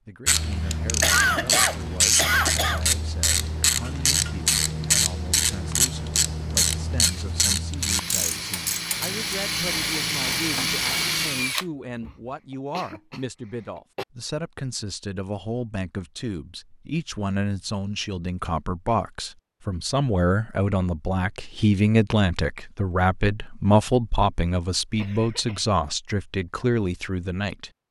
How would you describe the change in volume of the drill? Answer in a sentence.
The volume of the drill goes up.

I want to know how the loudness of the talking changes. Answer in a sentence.
The volume of the talking goes up.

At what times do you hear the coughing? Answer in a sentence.
You can hear the coughing from 0.7 to 2.8 s, from 12.8 to 14.1 s and from 24.9 to 25.6 s.